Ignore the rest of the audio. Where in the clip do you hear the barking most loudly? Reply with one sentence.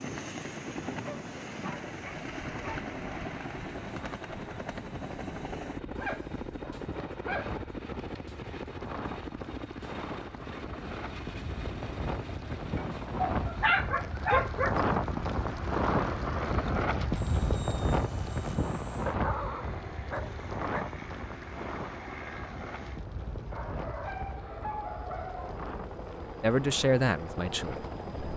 The volume of the barking peaks at 14 seconds.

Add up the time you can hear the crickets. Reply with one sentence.
You can't hear the crickets here.